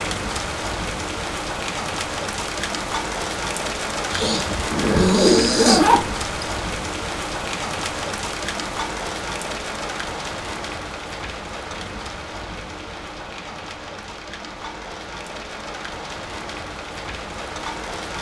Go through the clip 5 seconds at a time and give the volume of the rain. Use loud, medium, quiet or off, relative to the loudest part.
loud, loud, medium, medium.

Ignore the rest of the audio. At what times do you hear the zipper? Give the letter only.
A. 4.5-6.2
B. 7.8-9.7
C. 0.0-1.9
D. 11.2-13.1
A.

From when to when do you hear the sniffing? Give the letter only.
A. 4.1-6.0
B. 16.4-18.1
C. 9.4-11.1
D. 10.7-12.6
A.